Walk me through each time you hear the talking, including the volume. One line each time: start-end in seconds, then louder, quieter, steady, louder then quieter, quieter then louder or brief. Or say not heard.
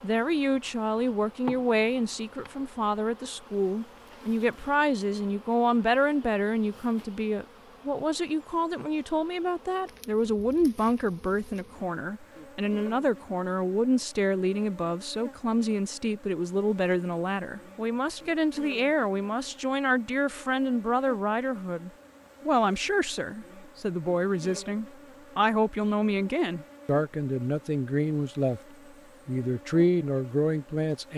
0.0-28.6 steady
29.2-31.1 brief.